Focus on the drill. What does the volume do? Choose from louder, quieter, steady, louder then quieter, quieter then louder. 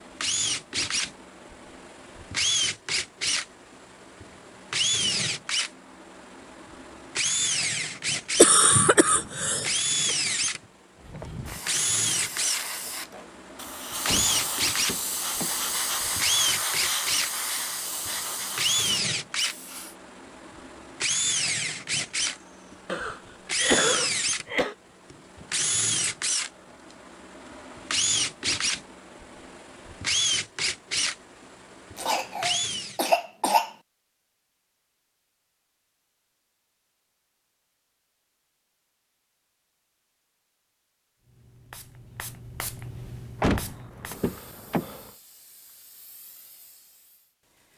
steady.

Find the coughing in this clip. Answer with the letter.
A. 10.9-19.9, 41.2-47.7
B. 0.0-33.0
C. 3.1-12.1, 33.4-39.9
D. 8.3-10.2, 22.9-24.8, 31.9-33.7
D.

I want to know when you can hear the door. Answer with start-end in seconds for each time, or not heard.
14.1-16.1, 43.4-45.1.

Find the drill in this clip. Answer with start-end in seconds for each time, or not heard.
0.0-33.0.